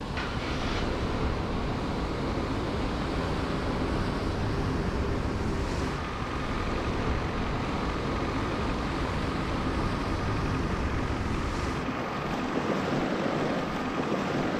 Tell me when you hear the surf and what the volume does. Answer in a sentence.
You can hear the surf from 0.0 to 14.5 s, at a steady volume.